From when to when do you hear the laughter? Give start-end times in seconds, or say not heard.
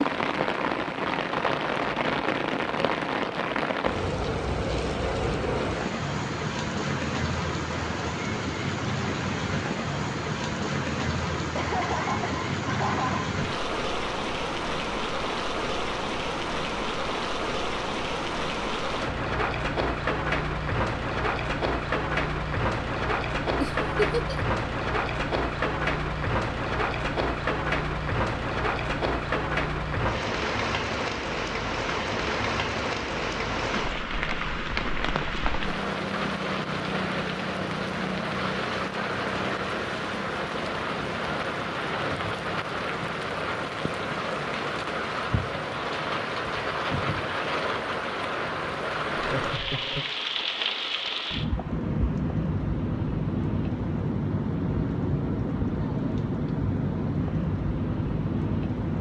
11.6-13.2, 23.6-24.4, 49.3-50.0.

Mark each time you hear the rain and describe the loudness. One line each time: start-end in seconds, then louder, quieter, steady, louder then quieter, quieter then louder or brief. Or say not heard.
0.0-58.9 steady.